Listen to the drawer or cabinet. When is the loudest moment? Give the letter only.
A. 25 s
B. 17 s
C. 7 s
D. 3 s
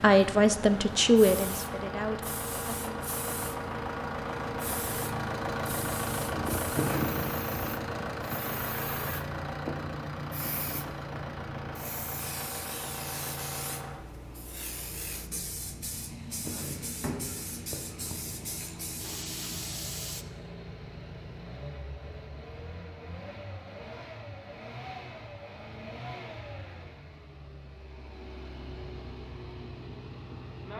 C.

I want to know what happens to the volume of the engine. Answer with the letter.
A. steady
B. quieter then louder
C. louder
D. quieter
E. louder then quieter
D.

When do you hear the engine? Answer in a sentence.
The engine can be heard from 0.1 to 30.7 s.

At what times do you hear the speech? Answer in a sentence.
You can hear the speech from 0.0 to 2.9 s.